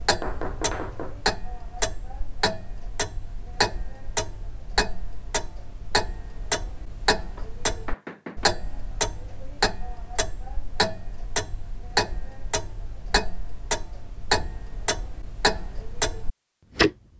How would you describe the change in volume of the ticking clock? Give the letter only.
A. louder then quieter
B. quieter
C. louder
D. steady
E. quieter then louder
D.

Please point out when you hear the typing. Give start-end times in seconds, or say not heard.
not heard.